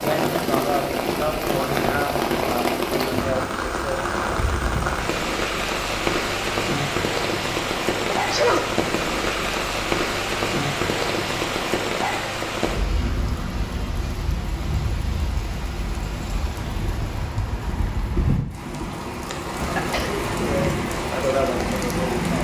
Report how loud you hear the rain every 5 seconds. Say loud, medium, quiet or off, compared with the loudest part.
loud, loud, loud, medium, loud.